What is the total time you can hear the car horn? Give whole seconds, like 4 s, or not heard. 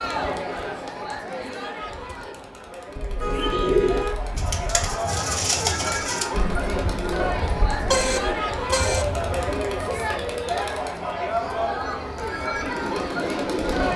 3 s.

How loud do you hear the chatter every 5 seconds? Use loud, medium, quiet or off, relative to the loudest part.
medium, loud, loud.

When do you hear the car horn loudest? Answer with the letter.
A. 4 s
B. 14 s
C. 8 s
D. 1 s
C.